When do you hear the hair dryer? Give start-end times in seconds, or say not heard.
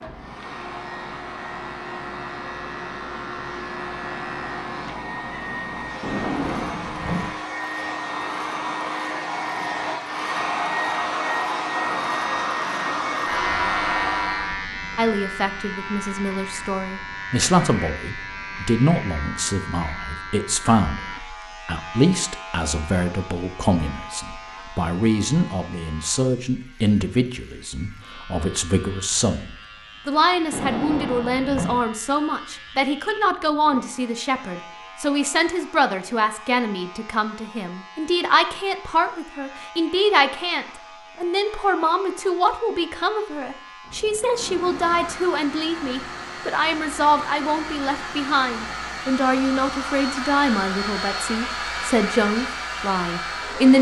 0.0-14.6, 44.5-53.7.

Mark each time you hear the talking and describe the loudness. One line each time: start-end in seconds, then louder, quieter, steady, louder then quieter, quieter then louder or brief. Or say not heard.
14.9-53.7 steady.